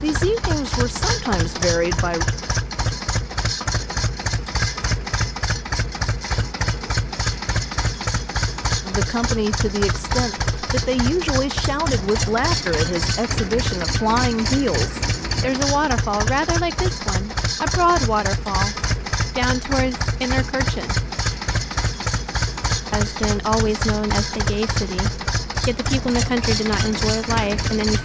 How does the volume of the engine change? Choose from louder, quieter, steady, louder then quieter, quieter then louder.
steady.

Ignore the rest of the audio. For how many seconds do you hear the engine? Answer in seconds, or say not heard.
28 s.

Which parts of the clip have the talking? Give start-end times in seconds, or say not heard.
0.0-2.2, 8.8-20.9, 22.9-28.0.